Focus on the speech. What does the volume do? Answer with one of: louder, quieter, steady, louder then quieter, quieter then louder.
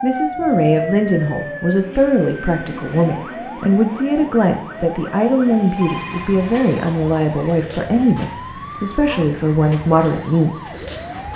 steady.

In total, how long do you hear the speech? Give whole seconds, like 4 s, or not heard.
11 s.